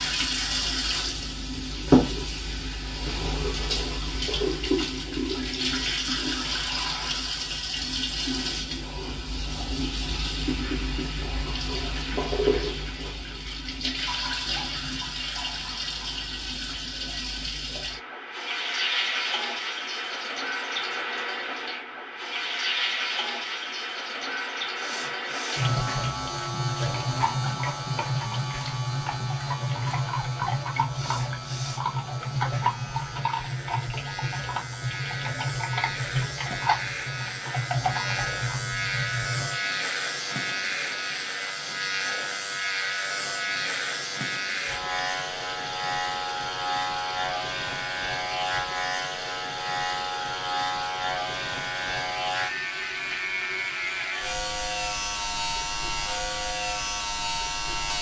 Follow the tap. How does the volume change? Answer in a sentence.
The loudness of the tap goes down.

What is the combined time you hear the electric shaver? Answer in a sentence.
The electric shaver can be heard for 32 seconds in total.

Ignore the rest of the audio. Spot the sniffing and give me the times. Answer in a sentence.
You can hear the sniffing from 24.8 to 25.7 s and from 30.9 to 31.9 s.